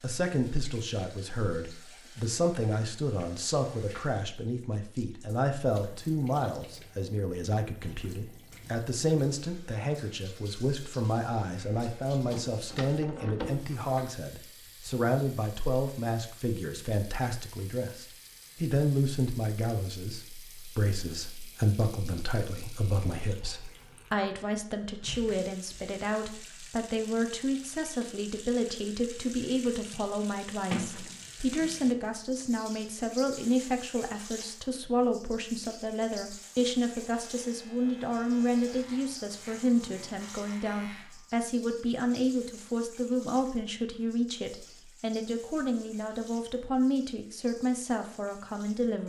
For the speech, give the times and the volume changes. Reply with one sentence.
You can hear the speech from 0.0 to 49.0 s, at a steady volume.